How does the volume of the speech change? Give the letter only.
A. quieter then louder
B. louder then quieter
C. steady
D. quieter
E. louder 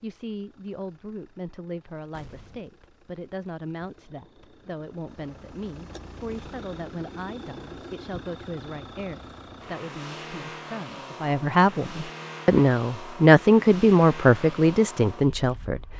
E.